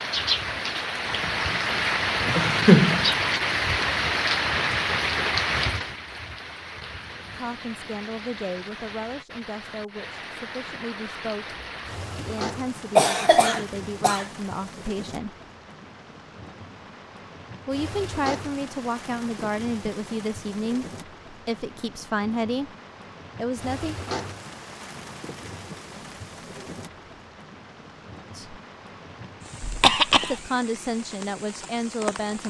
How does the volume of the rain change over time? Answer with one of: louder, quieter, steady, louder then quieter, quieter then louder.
quieter.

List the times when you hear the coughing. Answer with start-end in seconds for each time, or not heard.
2.4-3.1, 12.9-14.2, 29.6-30.4.